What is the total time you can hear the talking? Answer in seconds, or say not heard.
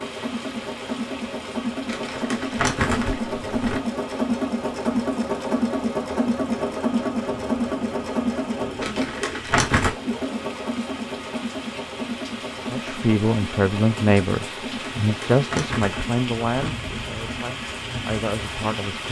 6 s.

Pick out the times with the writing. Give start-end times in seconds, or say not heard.
not heard.